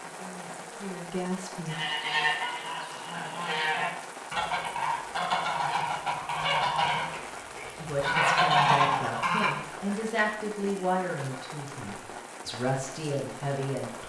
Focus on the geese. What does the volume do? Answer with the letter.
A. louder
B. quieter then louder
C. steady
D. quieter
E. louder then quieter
A.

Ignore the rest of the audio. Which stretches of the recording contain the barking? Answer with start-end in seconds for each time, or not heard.
not heard.